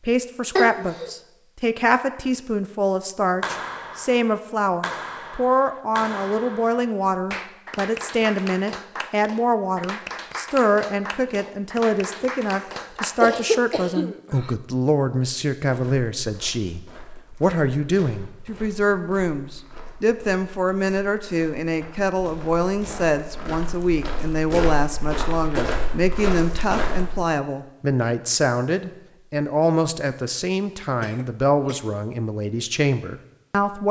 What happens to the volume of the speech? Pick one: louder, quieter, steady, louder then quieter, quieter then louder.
steady.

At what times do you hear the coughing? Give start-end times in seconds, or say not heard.
0.6-1.1, 13.2-14.5, 31.0-31.9.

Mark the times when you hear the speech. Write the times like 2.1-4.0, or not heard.
0.0-33.8.